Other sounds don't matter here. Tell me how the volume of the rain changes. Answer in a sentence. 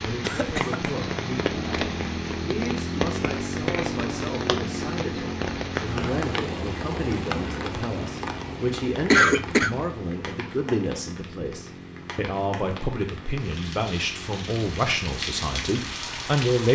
The volume of the rain goes down, then up.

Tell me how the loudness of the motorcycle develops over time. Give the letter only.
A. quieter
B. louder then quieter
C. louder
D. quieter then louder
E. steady
A.